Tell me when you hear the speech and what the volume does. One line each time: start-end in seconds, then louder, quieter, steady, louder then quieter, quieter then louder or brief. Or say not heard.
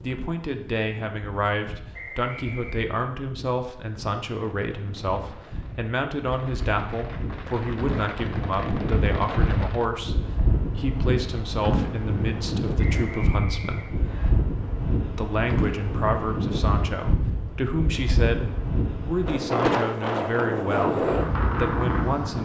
0.0-13.9 steady
15.2-22.4 steady.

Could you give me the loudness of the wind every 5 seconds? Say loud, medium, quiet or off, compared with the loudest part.
quiet, medium, loud, loud, loud.